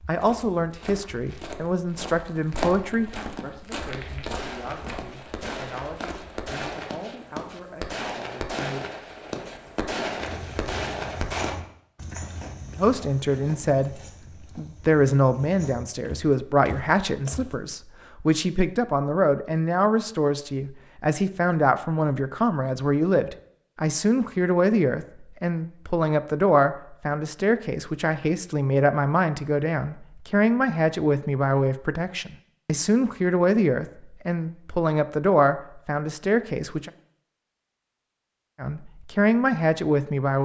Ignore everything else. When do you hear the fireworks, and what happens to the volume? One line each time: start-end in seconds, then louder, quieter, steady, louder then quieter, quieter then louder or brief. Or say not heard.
3.8-11.6 louder.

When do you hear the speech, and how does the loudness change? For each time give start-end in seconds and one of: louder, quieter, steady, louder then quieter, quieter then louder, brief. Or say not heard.
0.1-8.9 quieter
12.8-36.9 steady
38.6-40.4 brief.